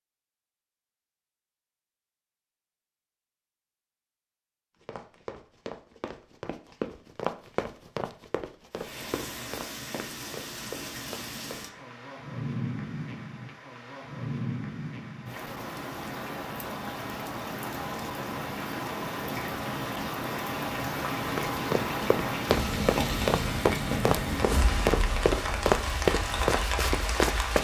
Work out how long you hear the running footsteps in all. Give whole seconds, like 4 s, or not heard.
13 s.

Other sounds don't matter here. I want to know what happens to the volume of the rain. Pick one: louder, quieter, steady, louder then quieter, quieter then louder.
louder.